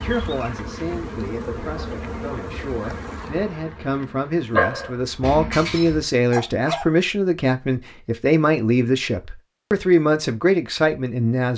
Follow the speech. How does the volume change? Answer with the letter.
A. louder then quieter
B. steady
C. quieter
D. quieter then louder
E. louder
E.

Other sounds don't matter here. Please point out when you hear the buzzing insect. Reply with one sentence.
The buzzing insect can be heard from 0.0 to 5.3 s.